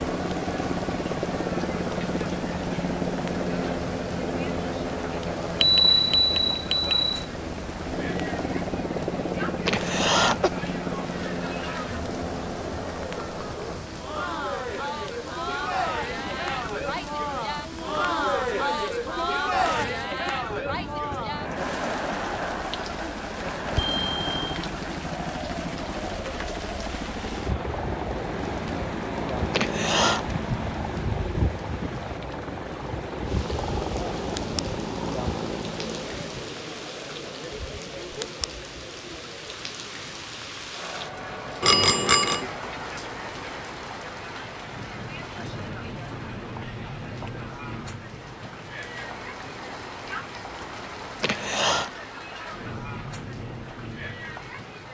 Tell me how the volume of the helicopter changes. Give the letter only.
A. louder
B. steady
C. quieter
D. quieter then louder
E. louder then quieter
D.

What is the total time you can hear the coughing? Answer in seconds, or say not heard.
2 s.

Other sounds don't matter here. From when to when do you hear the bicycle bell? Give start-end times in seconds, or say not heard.
5.6-7.2, 23.8-24.4, 41.6-42.4.